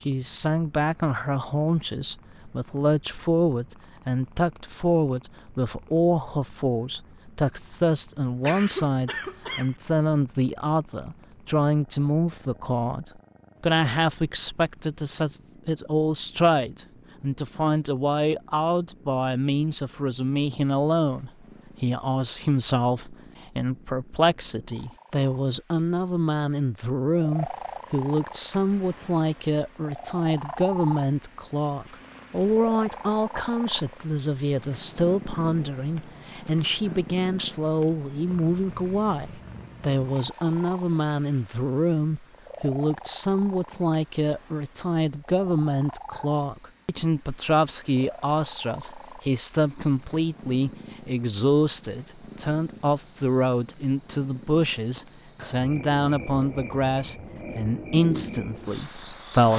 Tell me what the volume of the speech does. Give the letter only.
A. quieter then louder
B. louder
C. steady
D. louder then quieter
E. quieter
C.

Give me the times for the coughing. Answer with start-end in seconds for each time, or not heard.
8.4-9.8.